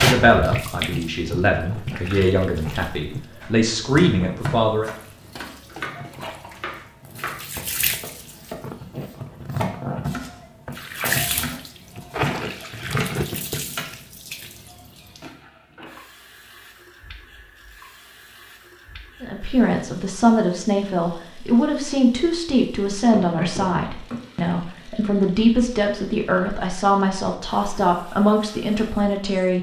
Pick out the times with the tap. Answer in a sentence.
You can hear the tap from 0.0 to 29.5 s.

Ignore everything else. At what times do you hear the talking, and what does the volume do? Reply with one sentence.
The talking can be heard from 0.0 to 4.9 s, getting louder; and from 19.2 to 29.5 s, at a steady volume.